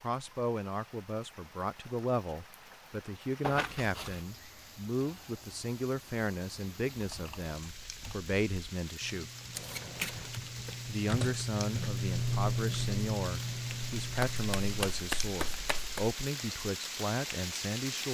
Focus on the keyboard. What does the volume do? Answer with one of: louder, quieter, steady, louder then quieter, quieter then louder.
louder then quieter.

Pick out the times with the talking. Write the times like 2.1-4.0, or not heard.
0.0-9.3, 10.8-18.0.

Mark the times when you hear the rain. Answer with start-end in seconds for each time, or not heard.
0.0-18.0.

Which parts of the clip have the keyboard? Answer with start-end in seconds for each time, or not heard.
7.0-14.9.